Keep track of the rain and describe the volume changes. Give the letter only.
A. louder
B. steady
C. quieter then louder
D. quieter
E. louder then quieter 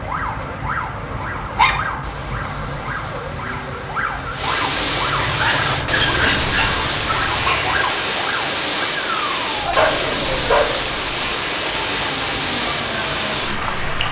A.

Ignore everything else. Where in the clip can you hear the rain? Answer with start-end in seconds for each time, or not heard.
0.0-14.0.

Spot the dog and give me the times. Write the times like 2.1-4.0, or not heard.
1.6-2.4, 5.2-7.8, 9.6-10.9.